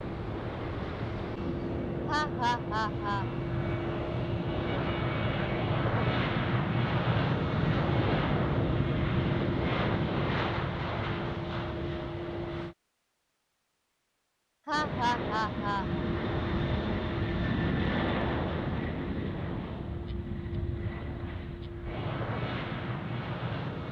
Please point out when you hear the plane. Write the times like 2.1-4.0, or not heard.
0.0-12.8, 14.7-23.8.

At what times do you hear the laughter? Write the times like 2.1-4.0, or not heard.
2.0-3.2, 14.7-16.1.